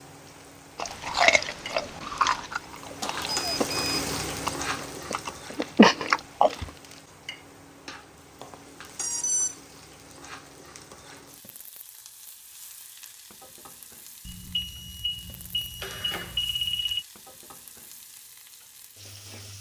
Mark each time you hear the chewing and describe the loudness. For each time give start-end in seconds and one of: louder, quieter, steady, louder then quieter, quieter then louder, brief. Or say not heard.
0.8-6.7 quieter then louder.